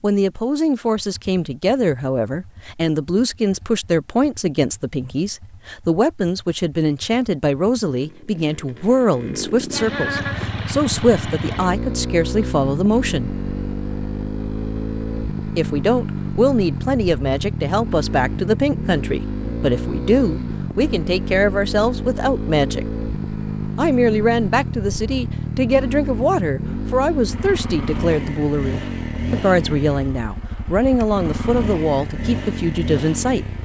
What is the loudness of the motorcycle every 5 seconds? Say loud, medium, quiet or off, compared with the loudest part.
quiet, medium, loud, loud, loud, loud, loud.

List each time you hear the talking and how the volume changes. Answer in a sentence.
The talking can be heard from 0.0 to 13.3 s, at a steady volume; from 15.6 to 22.9 s, at a steady volume; and from 23.8 to 33.5 s, at a steady volume.